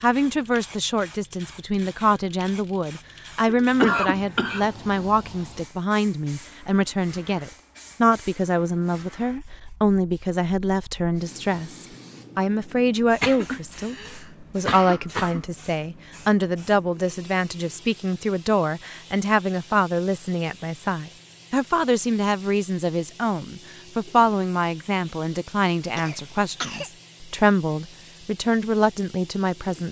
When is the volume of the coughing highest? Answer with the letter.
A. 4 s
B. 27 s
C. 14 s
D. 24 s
A.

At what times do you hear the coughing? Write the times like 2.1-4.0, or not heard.
3.5-4.7, 13.0-15.4, 25.9-26.9.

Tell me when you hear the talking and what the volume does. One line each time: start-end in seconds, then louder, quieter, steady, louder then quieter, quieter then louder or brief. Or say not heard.
0.0-29.8 steady.